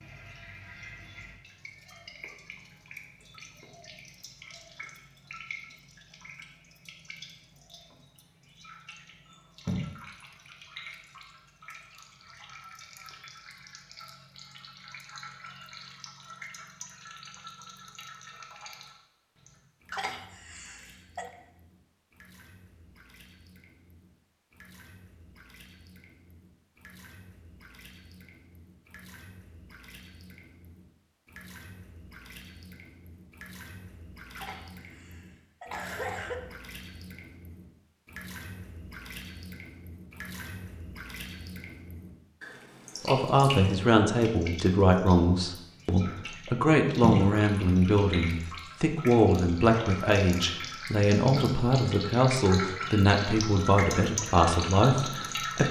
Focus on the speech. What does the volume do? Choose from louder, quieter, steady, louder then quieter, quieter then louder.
steady.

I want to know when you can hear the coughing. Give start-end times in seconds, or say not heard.
19.9-21.3, 34.4-36.4.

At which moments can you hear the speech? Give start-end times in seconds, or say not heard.
43.0-55.6.